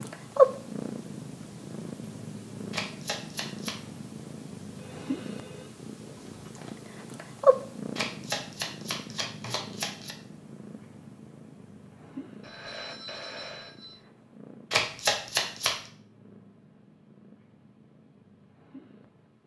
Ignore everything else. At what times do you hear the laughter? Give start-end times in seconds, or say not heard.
not heard.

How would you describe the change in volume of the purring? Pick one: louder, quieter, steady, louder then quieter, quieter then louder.
quieter.